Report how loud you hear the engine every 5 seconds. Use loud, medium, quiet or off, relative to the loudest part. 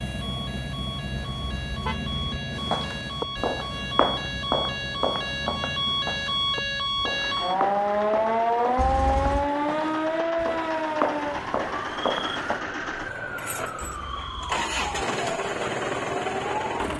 medium, medium, medium, loud.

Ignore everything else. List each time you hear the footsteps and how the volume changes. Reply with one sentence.
You can hear the footsteps from 2.5 to 12.6 s, getting quieter then louder.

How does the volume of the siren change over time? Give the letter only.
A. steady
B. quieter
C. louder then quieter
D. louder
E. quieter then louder
C.